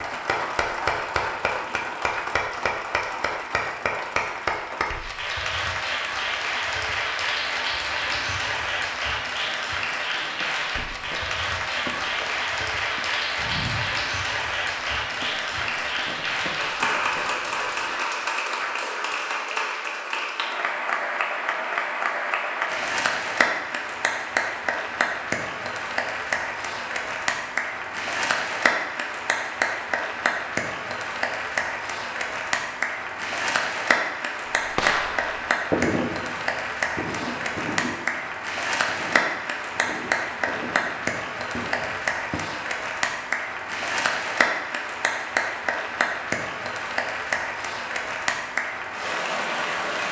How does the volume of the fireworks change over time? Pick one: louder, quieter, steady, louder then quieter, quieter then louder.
quieter.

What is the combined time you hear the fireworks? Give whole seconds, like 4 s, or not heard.
8 s.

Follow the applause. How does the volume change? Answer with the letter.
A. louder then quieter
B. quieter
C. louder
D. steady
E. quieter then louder
D.